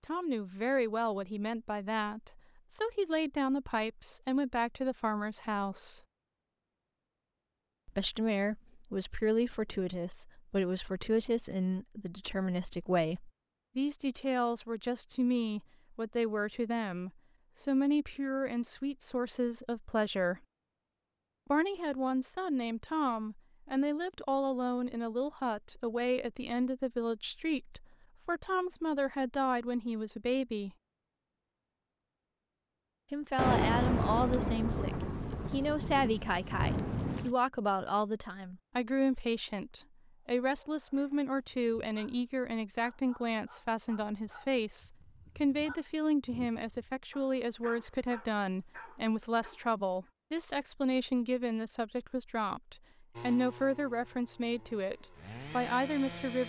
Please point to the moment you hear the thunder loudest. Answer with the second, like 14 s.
34 s.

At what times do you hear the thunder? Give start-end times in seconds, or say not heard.
33.4-37.4.